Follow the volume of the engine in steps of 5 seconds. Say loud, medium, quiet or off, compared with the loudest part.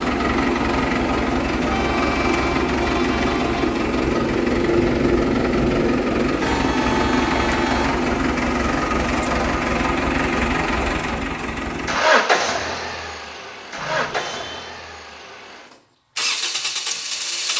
loud, loud, loud, medium.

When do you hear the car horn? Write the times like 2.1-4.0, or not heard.
1.6-3.6, 6.3-7.9, 13.8-14.7.